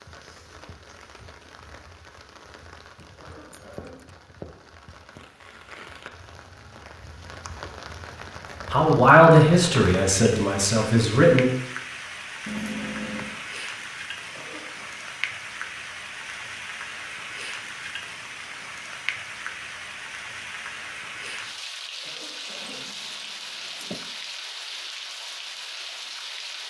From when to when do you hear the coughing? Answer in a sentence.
You can hear the coughing from 3.1 to 4.0 s, from 14.2 to 14.9 s and from 21.9 to 22.9 s.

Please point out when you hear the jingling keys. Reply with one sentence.
The jingling keys can be heard from 3.0 to 4.2 s, from 12.4 to 13.4 s and from 22.6 to 24.1 s.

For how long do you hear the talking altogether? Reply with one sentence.
You can hear the talking for 3 seconds altogether.